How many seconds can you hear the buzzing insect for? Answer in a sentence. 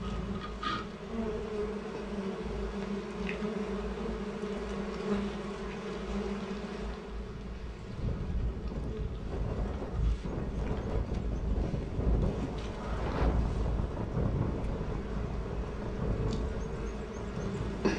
The buzzing insect can be heard for 18 seconds in total.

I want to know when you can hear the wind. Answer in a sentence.
You can hear the wind from 7.2 to 17.9 s.